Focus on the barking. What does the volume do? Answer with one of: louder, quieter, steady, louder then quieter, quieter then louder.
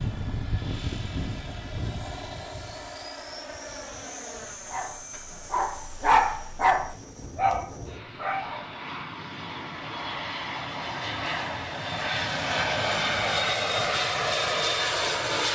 louder then quieter.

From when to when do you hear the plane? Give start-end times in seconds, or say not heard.
0.0-15.5.